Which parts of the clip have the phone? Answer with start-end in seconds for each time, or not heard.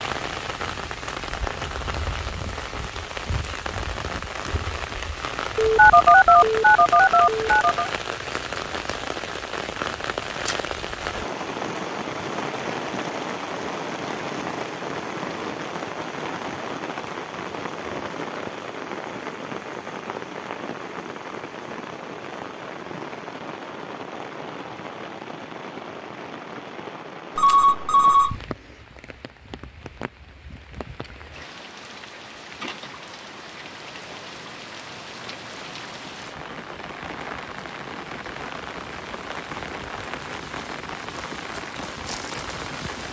5.5-7.9, 27.4-28.4.